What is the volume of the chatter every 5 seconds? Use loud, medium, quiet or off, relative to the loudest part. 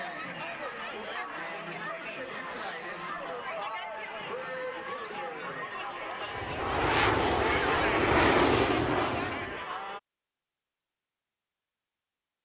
loud, loud, off.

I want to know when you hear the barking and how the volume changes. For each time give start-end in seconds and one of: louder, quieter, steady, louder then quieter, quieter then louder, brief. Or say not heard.
not heard.